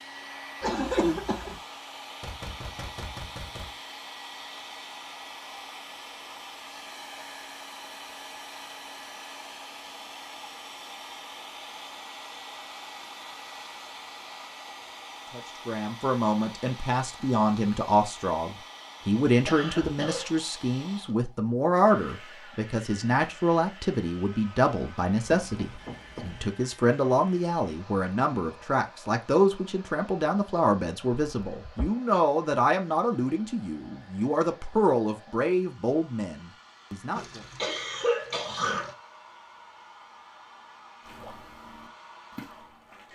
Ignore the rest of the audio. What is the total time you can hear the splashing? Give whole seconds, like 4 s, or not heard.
2 s.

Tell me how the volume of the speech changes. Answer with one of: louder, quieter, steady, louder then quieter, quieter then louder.
steady.